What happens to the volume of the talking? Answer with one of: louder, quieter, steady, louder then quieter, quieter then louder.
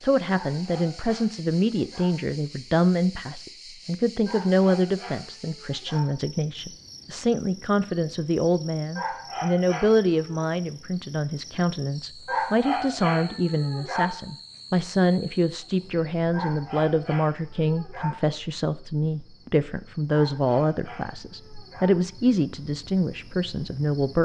steady.